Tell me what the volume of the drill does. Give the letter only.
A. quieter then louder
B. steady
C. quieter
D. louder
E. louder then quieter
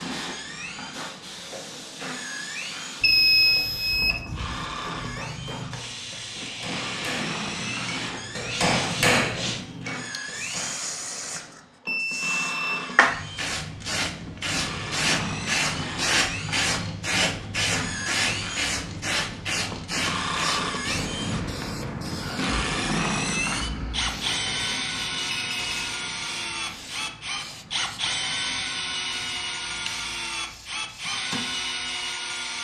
D.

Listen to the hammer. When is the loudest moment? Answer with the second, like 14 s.
9 s.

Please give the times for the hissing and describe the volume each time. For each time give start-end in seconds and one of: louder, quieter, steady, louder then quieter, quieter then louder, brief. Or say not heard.
0.0-32.5 louder then quieter.